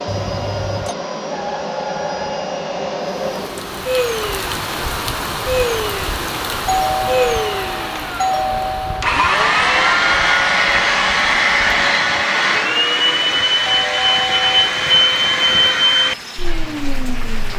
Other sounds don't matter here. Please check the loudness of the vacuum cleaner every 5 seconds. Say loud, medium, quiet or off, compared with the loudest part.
medium, loud, loud, loud.